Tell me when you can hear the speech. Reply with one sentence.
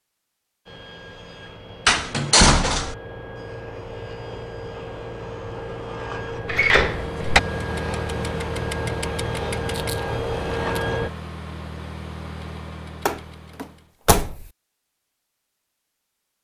The speech can't be heard in this clip.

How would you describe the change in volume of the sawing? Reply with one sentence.
The loudness of the sawing goes up.